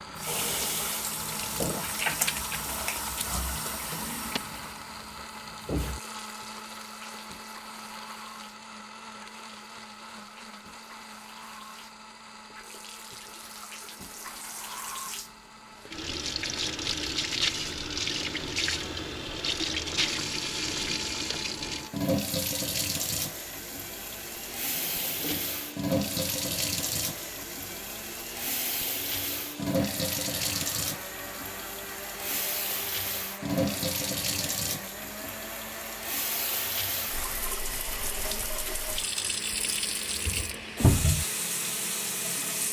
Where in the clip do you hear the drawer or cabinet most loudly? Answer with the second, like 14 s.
41 s.